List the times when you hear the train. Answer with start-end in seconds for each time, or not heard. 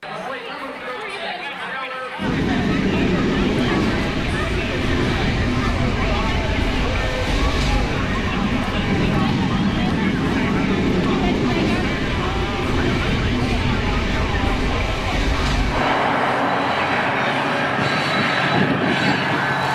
2.1-19.6.